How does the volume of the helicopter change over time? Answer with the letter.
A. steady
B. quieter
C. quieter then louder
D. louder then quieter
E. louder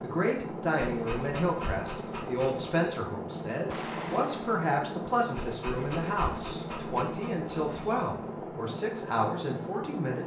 A.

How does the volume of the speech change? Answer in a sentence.
The loudness of the speech stays about the same.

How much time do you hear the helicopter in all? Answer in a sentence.
You can hear the helicopter for 10 seconds altogether.